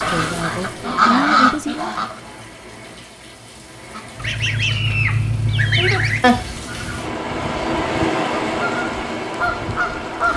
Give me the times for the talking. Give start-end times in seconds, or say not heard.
0.0-1.9.